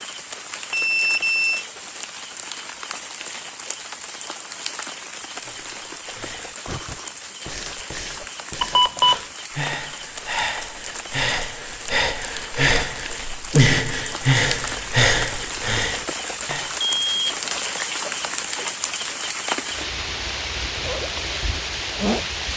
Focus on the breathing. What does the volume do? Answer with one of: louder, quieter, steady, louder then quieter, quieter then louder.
louder.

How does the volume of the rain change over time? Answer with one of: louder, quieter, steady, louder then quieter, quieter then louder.
louder.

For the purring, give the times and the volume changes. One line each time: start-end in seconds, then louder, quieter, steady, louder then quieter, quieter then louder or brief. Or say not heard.
not heard.